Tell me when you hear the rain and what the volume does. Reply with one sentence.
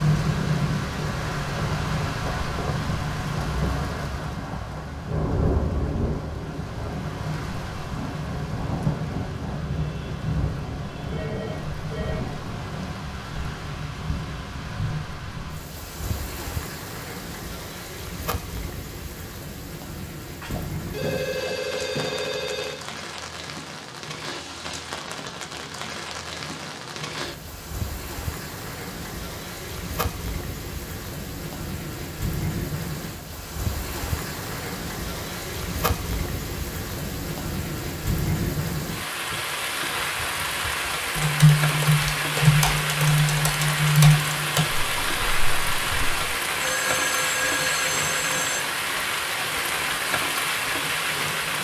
You can hear the rain from 0.0 to 51.6 s, getting quieter then louder.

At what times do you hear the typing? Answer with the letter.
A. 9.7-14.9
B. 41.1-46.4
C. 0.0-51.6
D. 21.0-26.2
B.